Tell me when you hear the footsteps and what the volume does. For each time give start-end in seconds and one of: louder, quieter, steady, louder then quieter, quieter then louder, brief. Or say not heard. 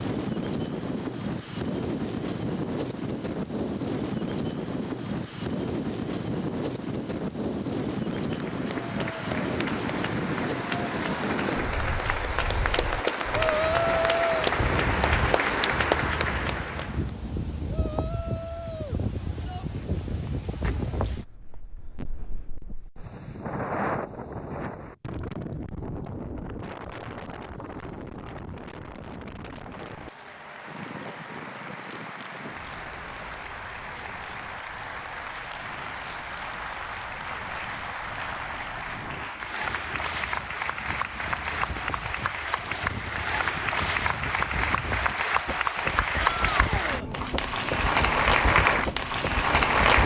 not heard.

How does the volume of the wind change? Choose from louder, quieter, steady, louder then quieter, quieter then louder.
quieter then louder.